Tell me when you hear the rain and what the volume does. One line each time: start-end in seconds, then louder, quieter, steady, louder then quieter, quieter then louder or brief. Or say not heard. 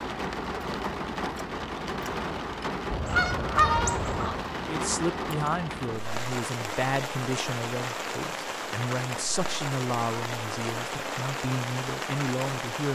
0.0-12.9 steady.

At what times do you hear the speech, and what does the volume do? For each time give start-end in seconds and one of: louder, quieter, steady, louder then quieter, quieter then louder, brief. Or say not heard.
4.7-12.9 steady.